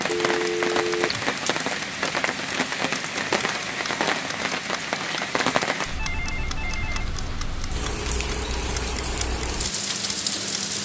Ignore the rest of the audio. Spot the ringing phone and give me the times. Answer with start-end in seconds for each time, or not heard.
0.1-1.1, 6.0-7.0.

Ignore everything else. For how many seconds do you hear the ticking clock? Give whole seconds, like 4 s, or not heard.
11 s.